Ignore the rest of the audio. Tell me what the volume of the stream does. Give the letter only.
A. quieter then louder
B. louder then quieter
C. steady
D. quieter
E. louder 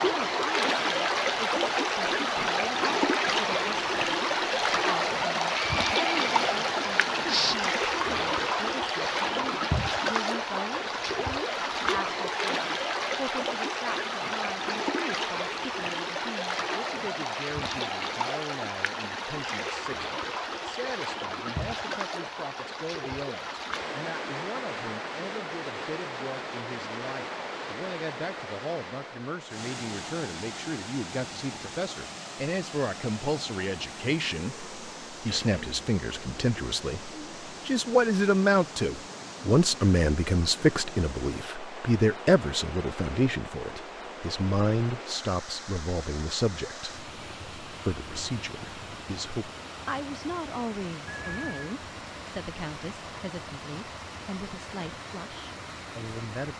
D.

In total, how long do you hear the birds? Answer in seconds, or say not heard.
not heard.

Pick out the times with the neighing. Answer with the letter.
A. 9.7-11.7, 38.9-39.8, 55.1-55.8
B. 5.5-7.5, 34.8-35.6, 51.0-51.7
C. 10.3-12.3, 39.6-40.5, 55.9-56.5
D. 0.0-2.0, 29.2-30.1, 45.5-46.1
B.